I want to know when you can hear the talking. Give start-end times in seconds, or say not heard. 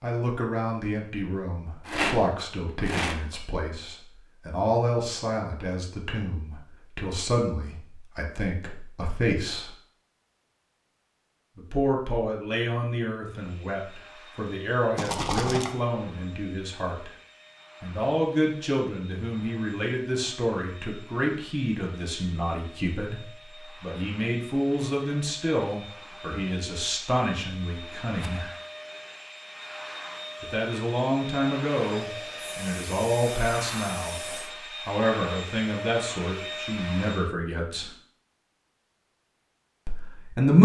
0.0-9.7, 11.6-17.1, 17.8-28.5, 30.4-34.1, 34.9-37.9, 39.9-40.6.